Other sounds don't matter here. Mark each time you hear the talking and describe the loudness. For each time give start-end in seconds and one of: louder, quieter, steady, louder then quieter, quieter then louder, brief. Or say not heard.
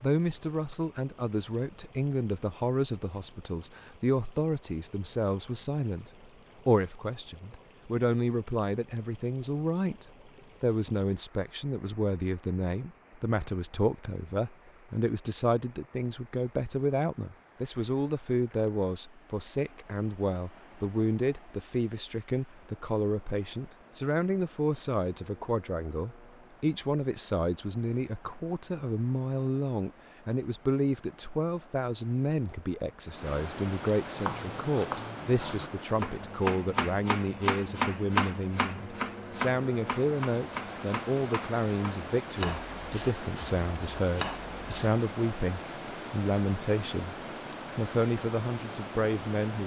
0.0-47.1 steady
47.8-49.6 brief.